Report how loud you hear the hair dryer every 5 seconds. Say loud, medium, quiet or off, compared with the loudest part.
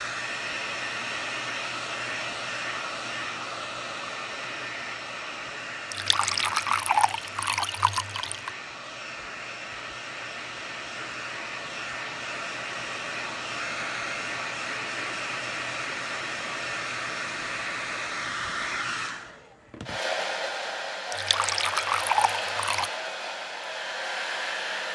loud, medium, loud, loud, loud.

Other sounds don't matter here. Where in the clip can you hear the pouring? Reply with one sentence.
You can hear the pouring from 5.9 to 8.5 s and from 21.1 to 22.9 s.